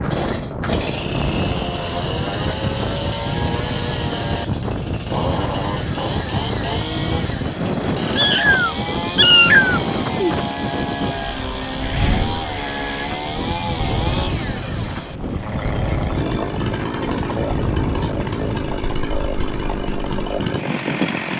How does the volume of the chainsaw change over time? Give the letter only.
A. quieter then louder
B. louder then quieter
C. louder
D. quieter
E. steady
E.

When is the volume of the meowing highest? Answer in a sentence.
The loudest moment of the meowing is at 9 seconds.